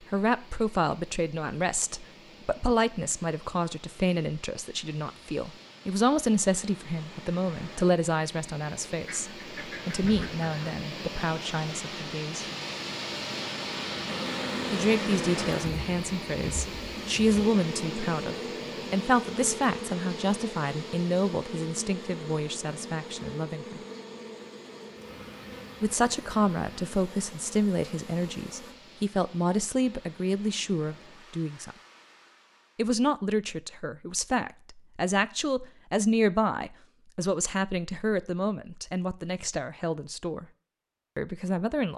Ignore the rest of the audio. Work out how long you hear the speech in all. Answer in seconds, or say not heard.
36 s.